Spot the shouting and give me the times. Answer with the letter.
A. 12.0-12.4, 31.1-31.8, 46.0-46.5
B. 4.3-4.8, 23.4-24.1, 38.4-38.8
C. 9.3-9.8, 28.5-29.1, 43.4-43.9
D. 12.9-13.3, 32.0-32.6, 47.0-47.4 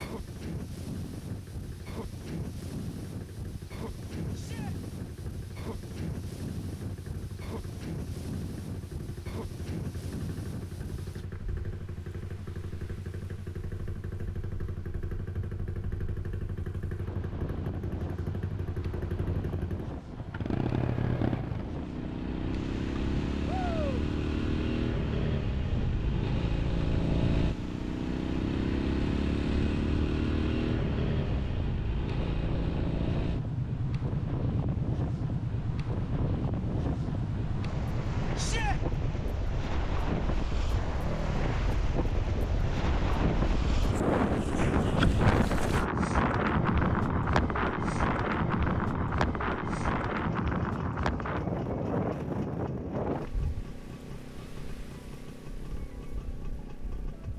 B.